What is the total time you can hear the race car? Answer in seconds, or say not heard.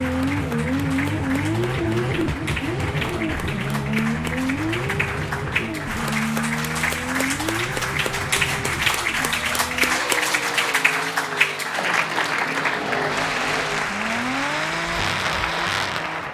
16 s.